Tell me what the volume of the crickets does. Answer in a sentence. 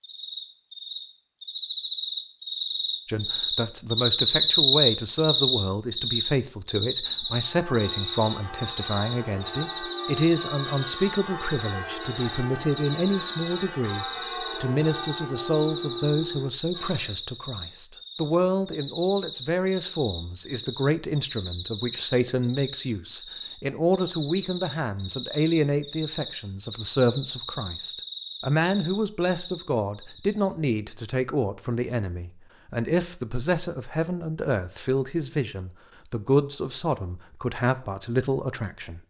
The volume of the crickets goes down.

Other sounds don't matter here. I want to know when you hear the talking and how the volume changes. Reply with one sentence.
The talking can be heard from 3.0 to 39.0 s, at a steady volume.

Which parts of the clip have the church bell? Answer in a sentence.
The church bell can be heard from 7.2 to 17.1 s.